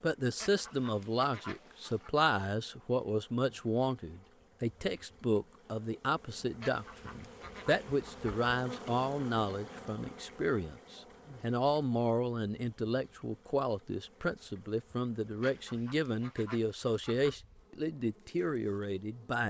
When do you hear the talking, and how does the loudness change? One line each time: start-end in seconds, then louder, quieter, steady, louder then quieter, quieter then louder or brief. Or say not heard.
0.0-19.4 steady.